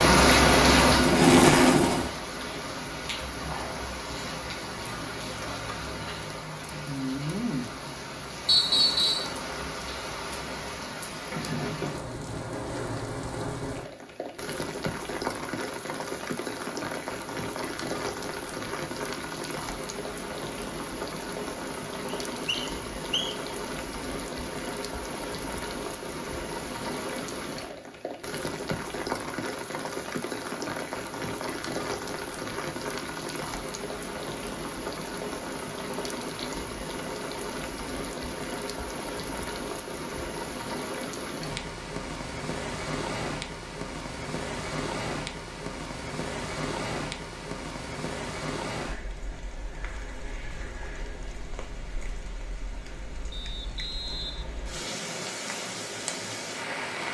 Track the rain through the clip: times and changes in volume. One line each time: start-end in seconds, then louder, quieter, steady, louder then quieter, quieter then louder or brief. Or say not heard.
0.0-57.0 quieter.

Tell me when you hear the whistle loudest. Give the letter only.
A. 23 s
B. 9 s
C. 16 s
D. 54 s
B.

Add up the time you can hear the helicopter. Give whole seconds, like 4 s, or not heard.
2 s.